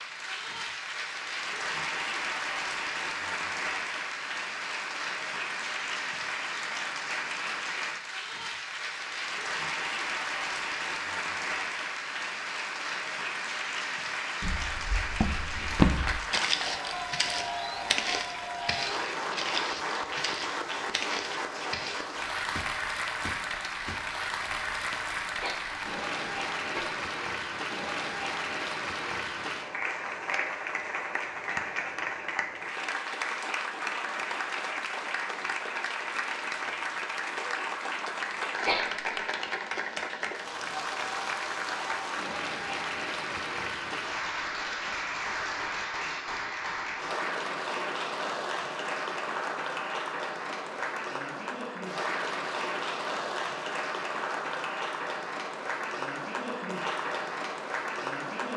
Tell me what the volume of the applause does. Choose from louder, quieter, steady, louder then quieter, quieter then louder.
steady.